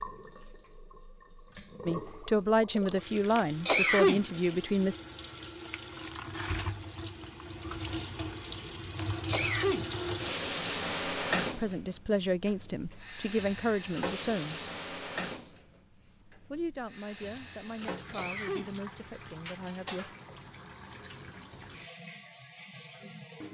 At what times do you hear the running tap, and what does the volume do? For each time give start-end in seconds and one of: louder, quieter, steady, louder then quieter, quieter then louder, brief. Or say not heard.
0.0-23.4 louder then quieter.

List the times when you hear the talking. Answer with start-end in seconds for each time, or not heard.
1.9-5.0, 11.6-14.7, 16.5-20.1.